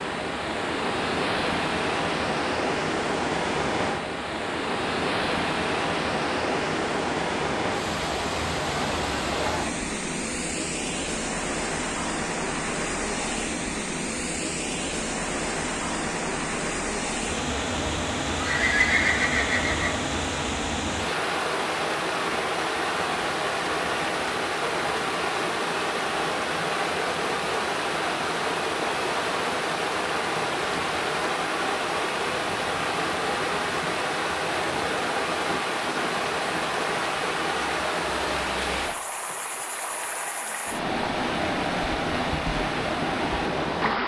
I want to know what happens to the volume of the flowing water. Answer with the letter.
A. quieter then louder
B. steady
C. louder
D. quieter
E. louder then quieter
B.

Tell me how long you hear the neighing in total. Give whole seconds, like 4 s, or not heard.
2 s.